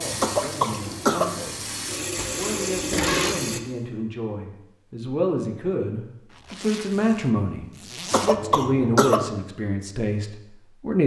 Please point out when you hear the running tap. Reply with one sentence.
You can hear the running tap from 0.0 to 3.6 s.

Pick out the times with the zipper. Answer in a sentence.
The zipper can be heard from 2.1 to 3.4 s and from 6.3 to 8.4 s.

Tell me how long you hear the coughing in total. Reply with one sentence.
The coughing can be heard for 2 seconds in total.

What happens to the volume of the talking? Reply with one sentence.
The loudness of the talking goes up.